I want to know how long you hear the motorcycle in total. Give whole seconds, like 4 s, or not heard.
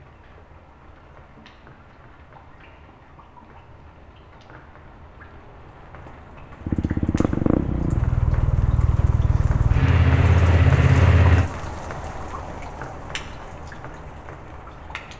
5 s.